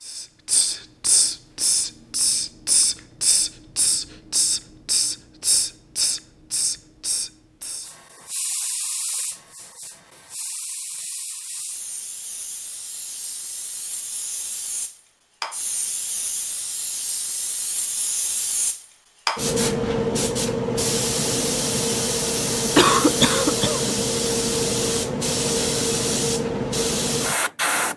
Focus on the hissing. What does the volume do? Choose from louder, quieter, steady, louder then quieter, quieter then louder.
quieter then louder.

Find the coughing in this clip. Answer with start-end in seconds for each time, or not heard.
22.8-23.9.